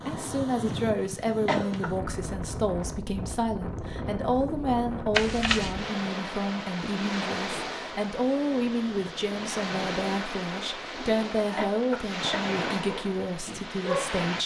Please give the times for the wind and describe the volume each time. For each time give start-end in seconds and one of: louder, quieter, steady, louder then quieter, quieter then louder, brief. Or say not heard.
0.0-14.4 steady.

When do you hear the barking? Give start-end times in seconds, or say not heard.
12.8-14.2.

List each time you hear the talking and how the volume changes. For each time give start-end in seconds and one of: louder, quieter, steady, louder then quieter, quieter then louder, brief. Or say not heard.
0.1-14.4 steady.